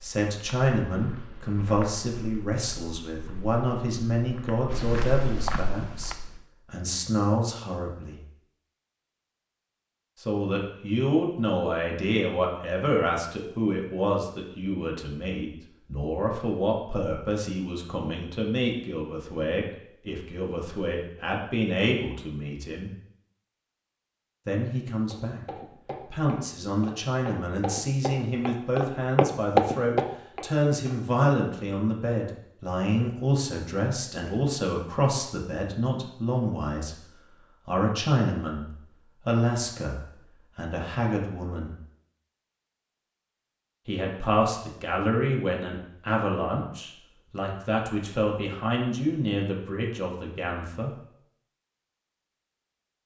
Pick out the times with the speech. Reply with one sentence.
You can hear the speech from 0.0 to 8.2 s, from 10.2 to 22.9 s, from 24.4 to 25.4 s, from 26.1 to 41.8 s and from 43.9 to 51.0 s.